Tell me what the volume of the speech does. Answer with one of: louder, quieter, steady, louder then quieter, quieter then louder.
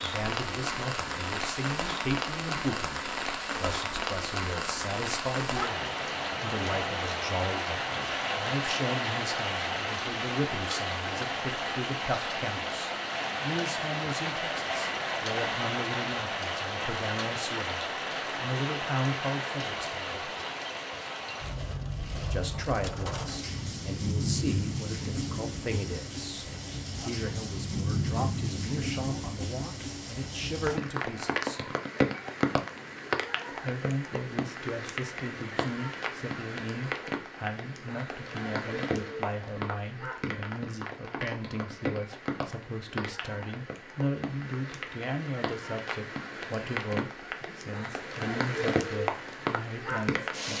steady.